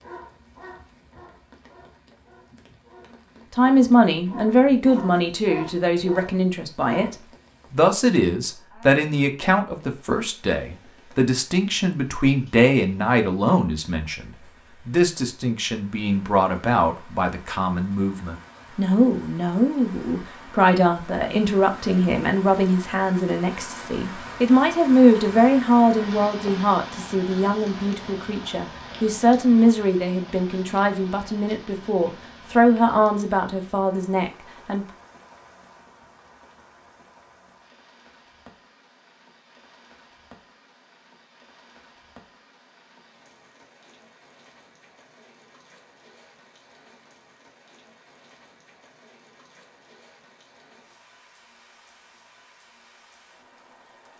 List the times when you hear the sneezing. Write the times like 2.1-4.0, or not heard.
not heard.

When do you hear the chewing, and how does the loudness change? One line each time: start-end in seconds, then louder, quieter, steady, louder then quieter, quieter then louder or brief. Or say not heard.
not heard.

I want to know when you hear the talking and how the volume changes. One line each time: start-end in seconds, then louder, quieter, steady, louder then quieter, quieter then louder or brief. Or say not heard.
3.5-34.9 steady.